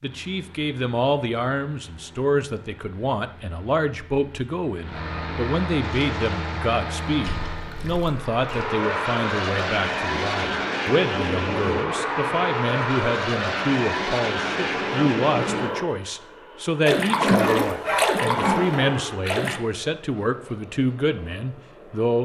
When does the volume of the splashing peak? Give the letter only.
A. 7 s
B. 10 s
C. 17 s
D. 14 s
C.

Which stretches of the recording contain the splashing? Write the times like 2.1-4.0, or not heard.
5.8-8.8, 16.9-19.6.